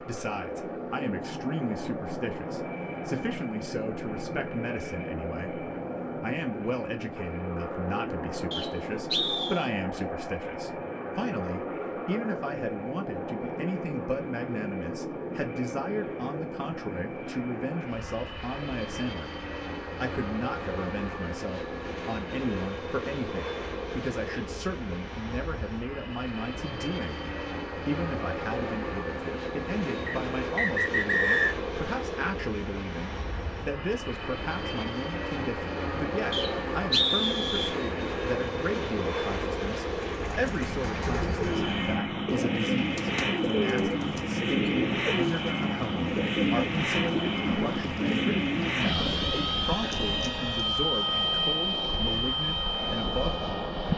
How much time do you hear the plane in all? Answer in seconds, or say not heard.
54 s.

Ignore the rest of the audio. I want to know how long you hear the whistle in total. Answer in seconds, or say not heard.
4 s.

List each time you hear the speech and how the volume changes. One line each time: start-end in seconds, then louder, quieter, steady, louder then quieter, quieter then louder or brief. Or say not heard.
0.0-53.9 steady.